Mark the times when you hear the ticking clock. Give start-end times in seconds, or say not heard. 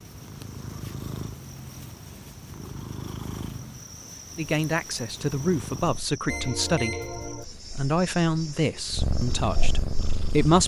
not heard.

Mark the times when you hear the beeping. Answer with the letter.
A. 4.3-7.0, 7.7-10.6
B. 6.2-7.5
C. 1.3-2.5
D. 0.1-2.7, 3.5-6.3
B.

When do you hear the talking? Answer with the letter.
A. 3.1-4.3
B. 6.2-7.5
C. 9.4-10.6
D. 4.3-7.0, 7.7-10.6
D.